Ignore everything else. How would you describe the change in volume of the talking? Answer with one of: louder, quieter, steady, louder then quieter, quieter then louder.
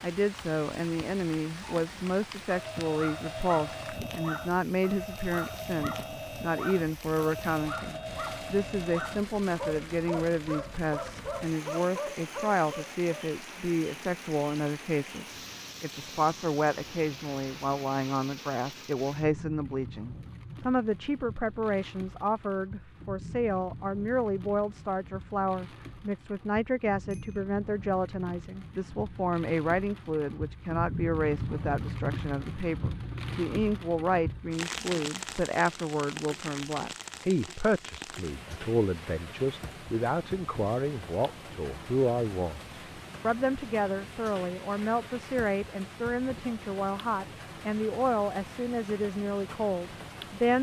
steady.